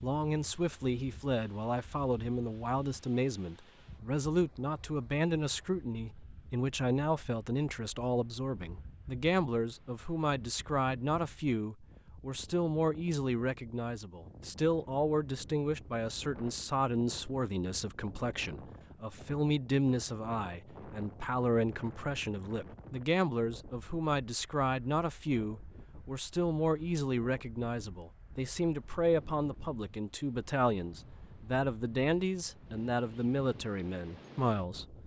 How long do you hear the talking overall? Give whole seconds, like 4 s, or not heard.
35 s.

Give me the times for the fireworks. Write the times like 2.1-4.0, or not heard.
not heard.